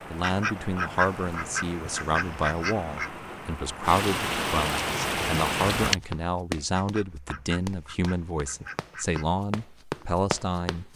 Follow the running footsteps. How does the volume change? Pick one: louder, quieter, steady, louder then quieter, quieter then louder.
quieter then louder.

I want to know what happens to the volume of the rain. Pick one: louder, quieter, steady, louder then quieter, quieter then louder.
louder.